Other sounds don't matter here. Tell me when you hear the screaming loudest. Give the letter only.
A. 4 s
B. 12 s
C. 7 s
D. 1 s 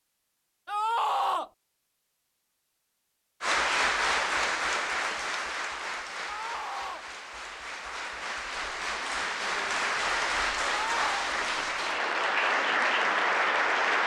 D.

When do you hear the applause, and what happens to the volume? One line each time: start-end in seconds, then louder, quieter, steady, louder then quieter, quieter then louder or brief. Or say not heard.
3.4-14.0 quieter then louder.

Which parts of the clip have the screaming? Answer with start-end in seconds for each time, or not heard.
0.7-1.5, 6.2-7.0, 10.8-11.3.